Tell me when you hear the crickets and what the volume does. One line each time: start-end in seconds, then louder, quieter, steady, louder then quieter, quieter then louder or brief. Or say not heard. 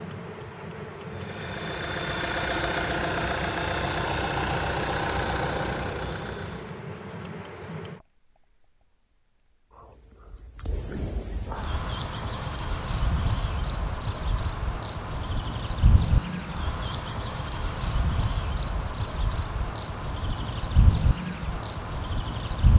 0.0-22.7 louder.